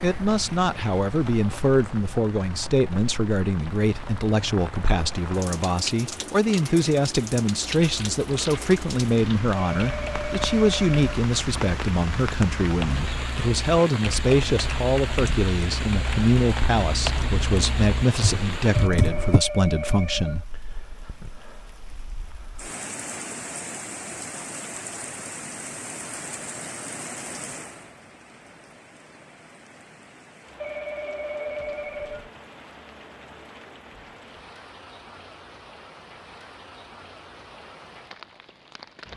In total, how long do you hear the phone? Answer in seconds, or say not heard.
5 s.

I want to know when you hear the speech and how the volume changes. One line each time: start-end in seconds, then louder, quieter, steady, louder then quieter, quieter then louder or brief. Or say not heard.
0.0-20.4 steady.